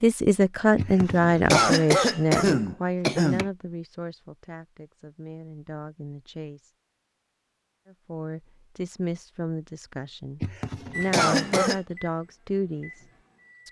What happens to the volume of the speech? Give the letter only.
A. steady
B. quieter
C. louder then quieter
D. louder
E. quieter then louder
E.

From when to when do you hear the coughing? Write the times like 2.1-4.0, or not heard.
0.8-3.5, 10.4-11.8.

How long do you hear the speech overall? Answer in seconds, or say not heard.
12 s.